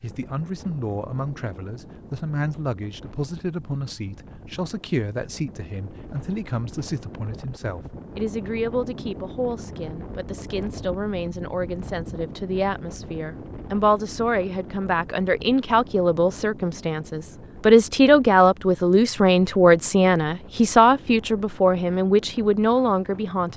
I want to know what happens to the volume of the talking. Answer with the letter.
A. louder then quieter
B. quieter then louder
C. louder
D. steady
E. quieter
C.